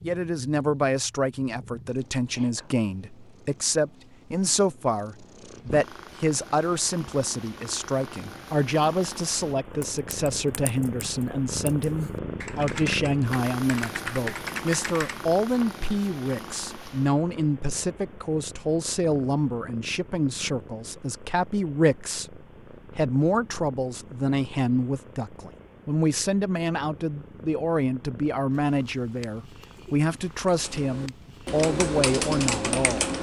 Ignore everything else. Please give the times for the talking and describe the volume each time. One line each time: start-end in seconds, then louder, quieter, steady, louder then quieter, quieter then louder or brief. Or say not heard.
0.0-33.0 steady.